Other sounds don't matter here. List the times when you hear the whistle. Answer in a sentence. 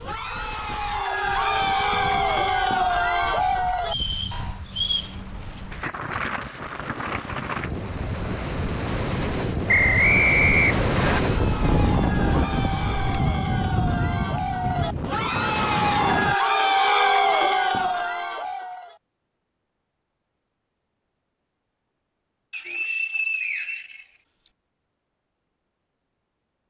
The whistle can be heard from 3.9 to 5.2 s, from 9.7 to 11.2 s and from 22.5 to 24.5 s.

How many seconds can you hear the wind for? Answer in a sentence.
You can hear the wind for 16 seconds altogether.